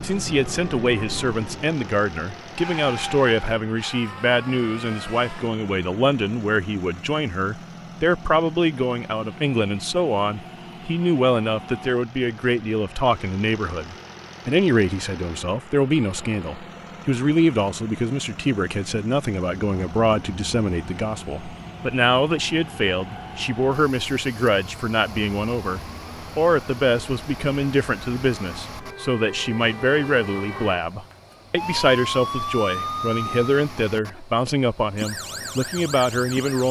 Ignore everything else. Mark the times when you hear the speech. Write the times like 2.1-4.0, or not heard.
0.0-36.6.